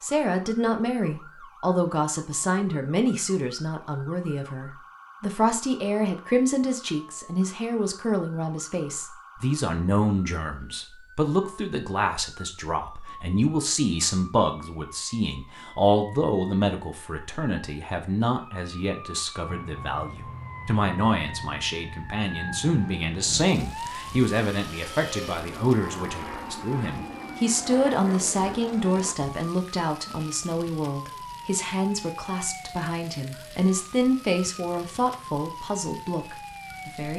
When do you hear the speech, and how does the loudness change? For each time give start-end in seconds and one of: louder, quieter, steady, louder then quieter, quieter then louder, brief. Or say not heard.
0.0-37.1 steady.